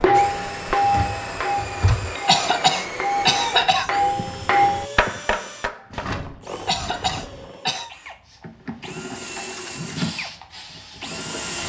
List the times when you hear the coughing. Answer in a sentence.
The coughing can be heard from 2.2 to 3.9 s and from 6.7 to 7.9 s.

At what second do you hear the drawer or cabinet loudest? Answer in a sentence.
The volume of the drawer or cabinet peaks at 2 seconds.